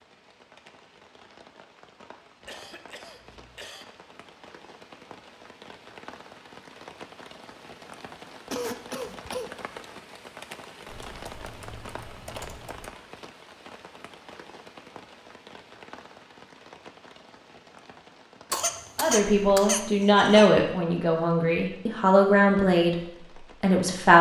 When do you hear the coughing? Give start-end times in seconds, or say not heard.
2.5-3.9, 8.5-9.5, 18.5-20.5.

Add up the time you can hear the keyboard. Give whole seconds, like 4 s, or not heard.
2 s.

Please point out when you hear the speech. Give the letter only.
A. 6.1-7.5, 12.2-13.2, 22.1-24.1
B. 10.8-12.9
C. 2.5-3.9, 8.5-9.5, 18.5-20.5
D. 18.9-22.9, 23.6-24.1
D.